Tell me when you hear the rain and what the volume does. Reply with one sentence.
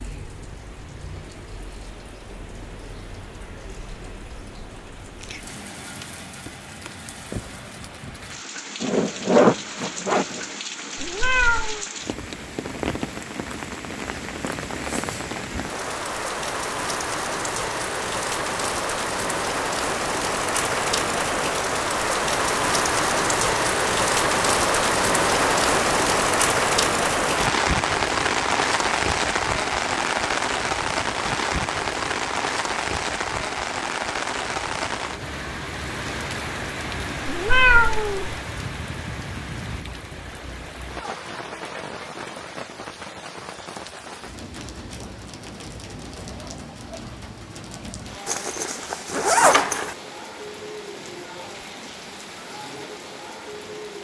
You can hear the rain from 0.0 to 53.9 s, getting louder then quieter.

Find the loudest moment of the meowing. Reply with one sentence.
The loudest moment of the meowing is at 38 seconds.